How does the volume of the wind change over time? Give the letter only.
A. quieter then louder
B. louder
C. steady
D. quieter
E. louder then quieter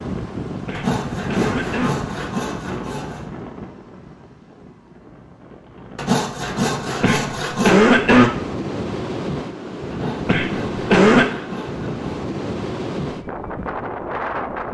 A.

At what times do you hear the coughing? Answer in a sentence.
You can hear the coughing from 0.7 to 1.9 s, from 7.0 to 8.3 s and from 10.2 to 11.3 s.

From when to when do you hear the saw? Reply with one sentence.
The saw can be heard from 0.7 to 3.2 s, from 6.0 to 7.8 s and from 9.9 to 12.1 s.